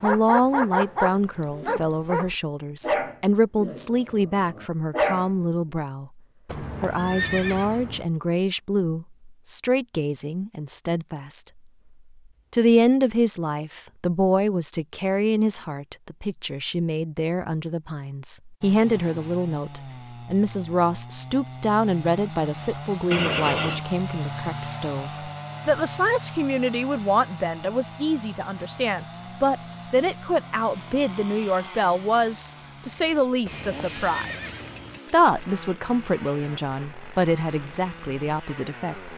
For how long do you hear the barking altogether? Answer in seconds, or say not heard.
5 s.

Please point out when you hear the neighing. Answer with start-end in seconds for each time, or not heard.
6.5-8.1, 23.1-23.8, 33.5-35.0.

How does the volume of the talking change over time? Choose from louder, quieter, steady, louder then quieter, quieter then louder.
steady.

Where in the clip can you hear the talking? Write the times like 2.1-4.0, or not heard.
0.0-11.6, 12.5-39.1.